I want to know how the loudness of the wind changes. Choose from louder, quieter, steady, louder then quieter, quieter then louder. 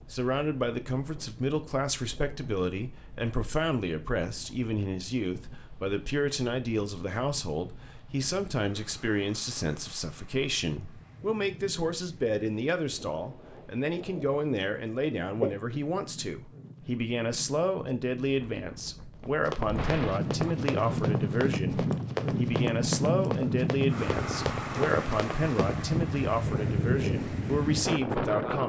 louder.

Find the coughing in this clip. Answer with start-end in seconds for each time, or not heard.
15.4-15.9.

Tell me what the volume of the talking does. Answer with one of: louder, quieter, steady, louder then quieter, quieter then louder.
steady.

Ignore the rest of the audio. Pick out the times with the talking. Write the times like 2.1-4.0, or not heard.
0.1-28.6.